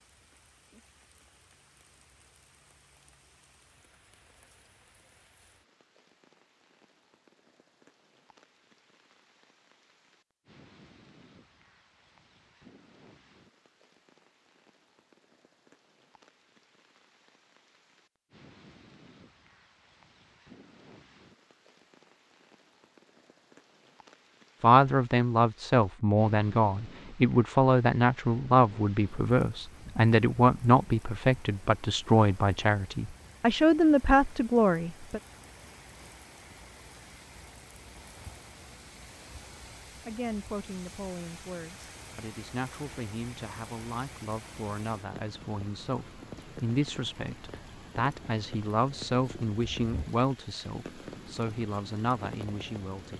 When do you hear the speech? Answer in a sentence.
The speech can be heard from 24.6 to 35.2 s and from 40.0 to 53.1 s.